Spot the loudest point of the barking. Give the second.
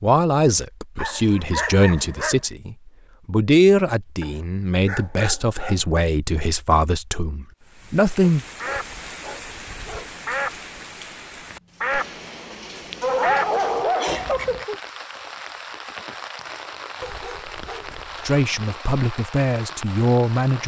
13 s.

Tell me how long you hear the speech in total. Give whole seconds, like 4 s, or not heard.
11 s.